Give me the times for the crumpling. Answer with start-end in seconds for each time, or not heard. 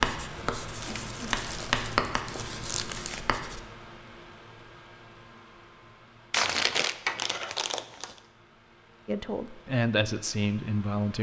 0.8-3.2, 6.3-8.2.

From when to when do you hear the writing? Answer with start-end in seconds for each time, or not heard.
0.0-3.6.